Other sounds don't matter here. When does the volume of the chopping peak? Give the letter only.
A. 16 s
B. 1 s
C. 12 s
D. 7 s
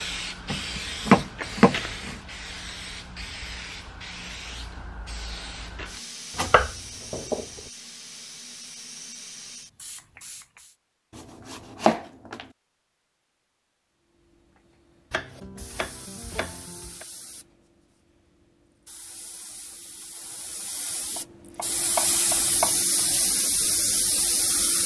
B.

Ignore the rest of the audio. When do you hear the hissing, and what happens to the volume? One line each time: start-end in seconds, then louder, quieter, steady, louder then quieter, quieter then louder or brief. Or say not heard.
0.0-10.8 quieter
14.2-24.8 louder.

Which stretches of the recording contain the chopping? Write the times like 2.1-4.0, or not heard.
0.5-2.1, 6.3-7.5, 11.2-12.4, 15.1-17.1, 21.1-22.8.